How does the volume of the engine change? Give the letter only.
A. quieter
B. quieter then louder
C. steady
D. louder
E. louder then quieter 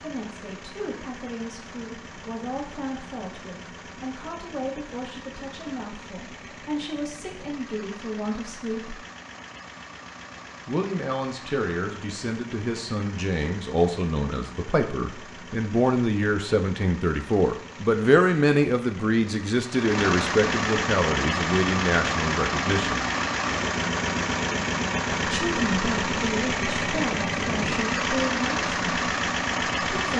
D.